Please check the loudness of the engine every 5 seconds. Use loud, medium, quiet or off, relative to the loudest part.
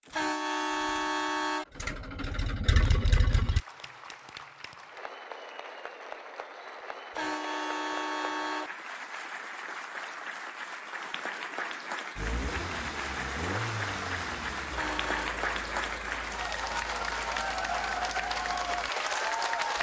loud, off, loud, medium.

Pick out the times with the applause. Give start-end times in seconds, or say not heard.
2.8-19.7.